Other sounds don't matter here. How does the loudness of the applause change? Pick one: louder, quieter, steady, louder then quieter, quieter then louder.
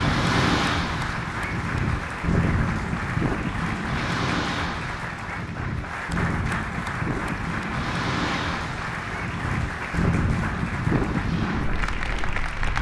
steady.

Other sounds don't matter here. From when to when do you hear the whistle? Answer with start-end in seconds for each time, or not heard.
not heard.